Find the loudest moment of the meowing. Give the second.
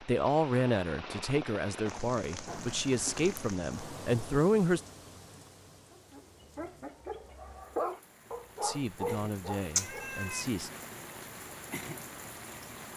10 s.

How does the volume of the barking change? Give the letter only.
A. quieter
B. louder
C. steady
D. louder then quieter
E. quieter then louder
D.